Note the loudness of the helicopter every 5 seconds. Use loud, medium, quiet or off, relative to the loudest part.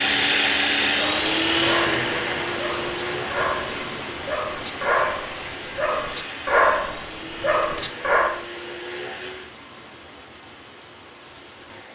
loud, quiet, off.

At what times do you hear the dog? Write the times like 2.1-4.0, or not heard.
0.9-8.4.